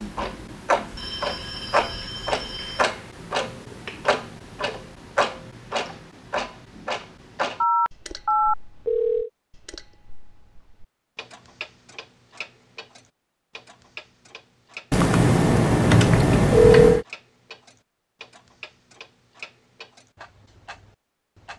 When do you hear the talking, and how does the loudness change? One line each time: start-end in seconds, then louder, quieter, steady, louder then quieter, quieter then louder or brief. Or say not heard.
not heard.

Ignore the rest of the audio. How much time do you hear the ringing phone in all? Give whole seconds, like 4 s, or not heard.
6 s.